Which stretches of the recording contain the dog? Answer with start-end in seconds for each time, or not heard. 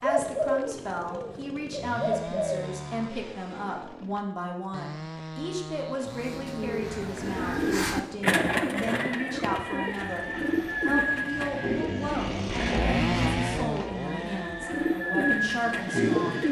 not heard.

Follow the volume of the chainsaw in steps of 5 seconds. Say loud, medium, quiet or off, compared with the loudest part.
medium, medium, loud, medium.